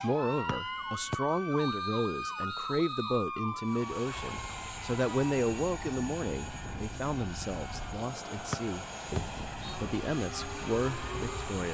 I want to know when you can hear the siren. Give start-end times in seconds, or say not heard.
0.0-11.6.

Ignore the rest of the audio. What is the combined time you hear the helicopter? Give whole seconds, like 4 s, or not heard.
8 s.